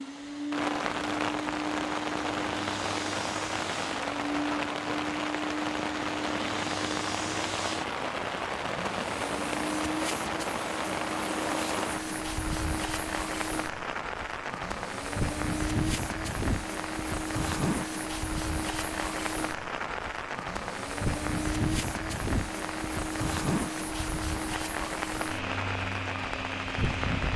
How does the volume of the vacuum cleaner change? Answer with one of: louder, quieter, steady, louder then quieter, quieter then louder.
steady.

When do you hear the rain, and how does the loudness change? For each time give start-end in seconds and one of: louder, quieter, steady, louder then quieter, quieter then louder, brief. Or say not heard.
0.0-27.3 steady.